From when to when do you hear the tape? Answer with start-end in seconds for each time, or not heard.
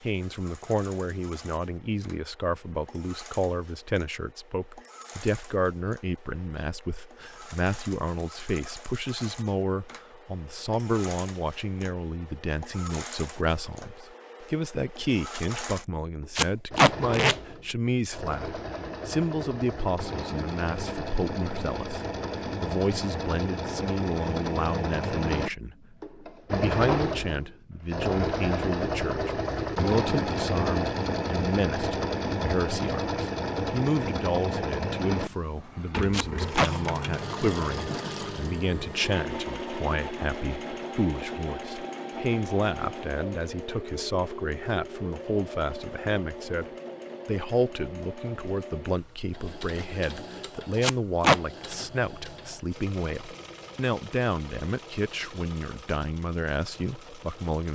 16.4-17.4, 36.1-36.7, 50.8-51.4.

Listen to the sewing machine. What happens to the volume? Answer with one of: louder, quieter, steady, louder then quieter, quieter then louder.
louder then quieter.